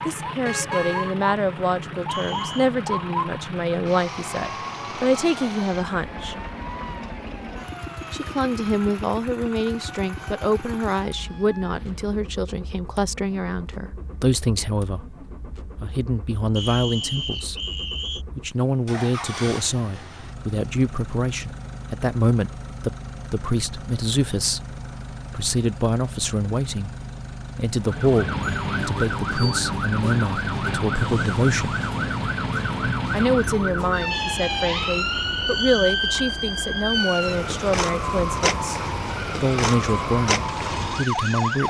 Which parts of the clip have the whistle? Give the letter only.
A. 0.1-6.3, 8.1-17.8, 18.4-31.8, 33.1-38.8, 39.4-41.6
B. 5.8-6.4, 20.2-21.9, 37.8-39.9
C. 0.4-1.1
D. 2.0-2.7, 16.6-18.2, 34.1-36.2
D.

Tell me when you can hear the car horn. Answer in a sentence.
The car horn can be heard from 0.4 to 1.1 s.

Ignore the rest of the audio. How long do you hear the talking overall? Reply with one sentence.
The talking can be heard for 37 seconds in total.